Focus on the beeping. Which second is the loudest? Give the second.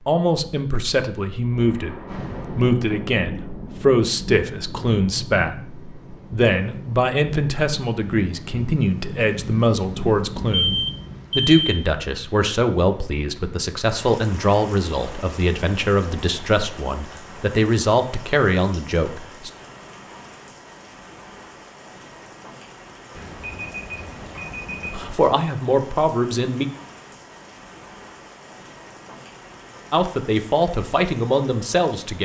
11 s.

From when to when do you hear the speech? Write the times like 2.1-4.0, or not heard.
0.1-10.8, 11.3-19.5, 24.9-26.6, 29.9-32.2.